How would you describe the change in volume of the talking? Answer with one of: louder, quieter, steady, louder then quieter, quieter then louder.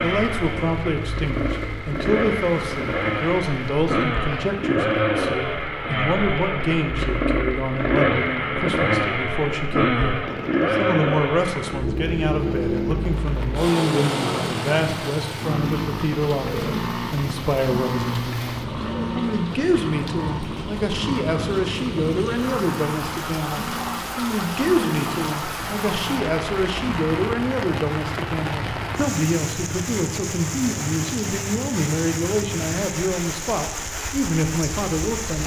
steady.